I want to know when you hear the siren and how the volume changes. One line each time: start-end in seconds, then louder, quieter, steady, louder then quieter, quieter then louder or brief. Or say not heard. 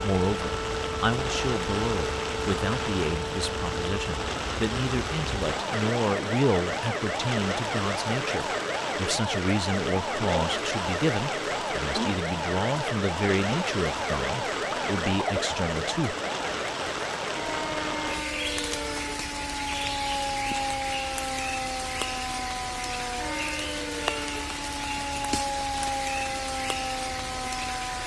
0.0-28.0 steady.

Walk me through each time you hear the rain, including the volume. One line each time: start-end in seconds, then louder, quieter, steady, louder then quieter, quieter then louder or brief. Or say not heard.
0.0-28.0 steady.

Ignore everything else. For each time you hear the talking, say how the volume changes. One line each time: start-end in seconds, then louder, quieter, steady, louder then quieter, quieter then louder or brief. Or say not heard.
0.0-16.1 steady.